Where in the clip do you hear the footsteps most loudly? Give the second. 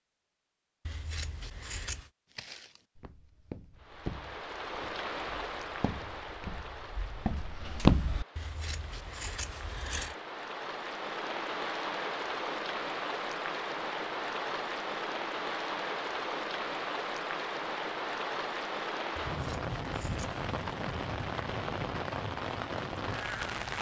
8 s.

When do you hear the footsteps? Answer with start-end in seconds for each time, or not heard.
2.3-8.2.